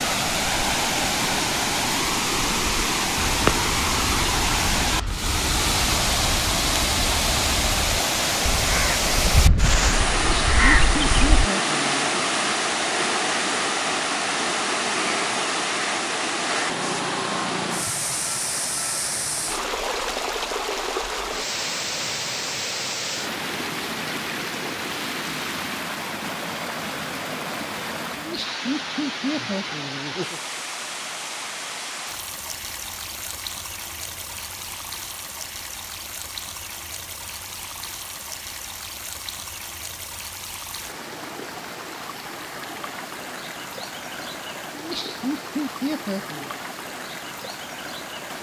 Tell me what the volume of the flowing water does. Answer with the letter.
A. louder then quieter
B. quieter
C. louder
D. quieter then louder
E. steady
B.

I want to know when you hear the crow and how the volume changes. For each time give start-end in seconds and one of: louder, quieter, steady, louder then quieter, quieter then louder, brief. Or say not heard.
3.1-11.5 louder.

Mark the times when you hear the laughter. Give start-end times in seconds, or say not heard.
10.2-12.2, 28.1-30.4, 44.7-46.5.